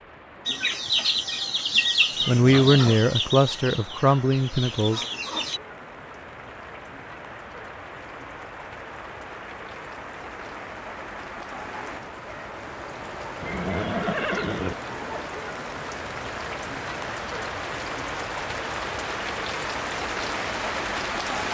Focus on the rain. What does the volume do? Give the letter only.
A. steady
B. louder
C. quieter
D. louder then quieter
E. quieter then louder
B.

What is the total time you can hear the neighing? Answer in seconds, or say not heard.
2 s.